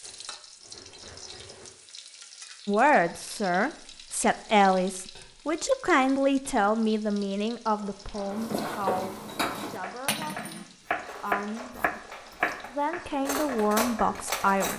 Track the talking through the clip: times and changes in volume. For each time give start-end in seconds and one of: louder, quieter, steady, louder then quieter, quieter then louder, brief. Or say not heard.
2.6-12.1 quieter
12.7-14.7 brief.